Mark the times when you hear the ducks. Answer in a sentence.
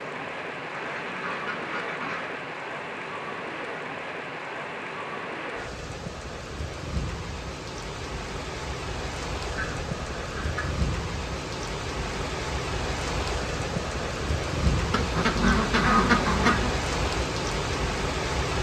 The ducks can be heard from 0.7 to 2.4 s, from 9.5 to 10.8 s and from 14.9 to 16.8 s.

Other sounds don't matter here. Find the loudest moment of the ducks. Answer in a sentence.
The volume of the ducks peaks at 16 seconds.